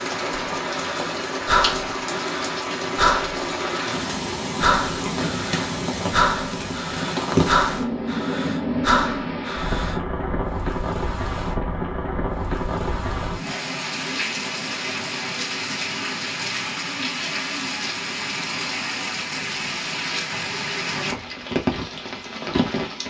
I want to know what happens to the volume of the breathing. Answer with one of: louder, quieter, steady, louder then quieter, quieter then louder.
steady.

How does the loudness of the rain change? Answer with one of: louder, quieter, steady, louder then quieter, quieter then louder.
steady.